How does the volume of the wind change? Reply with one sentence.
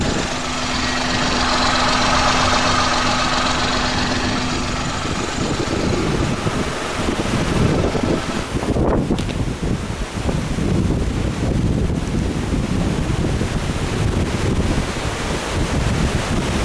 The volume of the wind goes up.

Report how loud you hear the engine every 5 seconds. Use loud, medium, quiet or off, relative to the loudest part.
loud, medium, off, off.